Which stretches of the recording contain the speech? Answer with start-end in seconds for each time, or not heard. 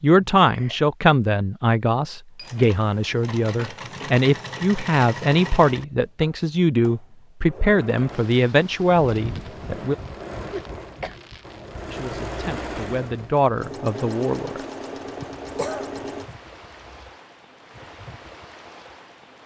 0.0-9.9, 11.9-14.6.